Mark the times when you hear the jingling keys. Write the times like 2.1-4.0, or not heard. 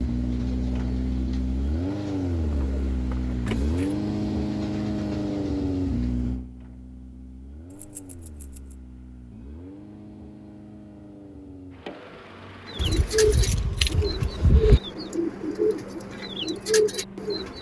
2.4-4.0, 7.7-8.8, 12.8-14.8.